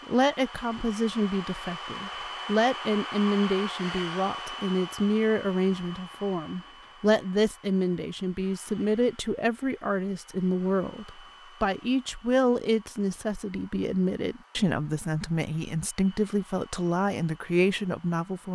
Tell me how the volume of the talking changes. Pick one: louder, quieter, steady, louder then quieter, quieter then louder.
steady.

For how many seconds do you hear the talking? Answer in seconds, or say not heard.
18 s.